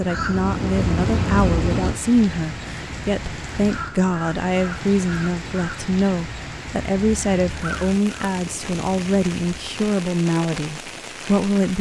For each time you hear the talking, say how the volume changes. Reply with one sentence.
The talking can be heard from 0.0 to 11.7 s, at a steady volume.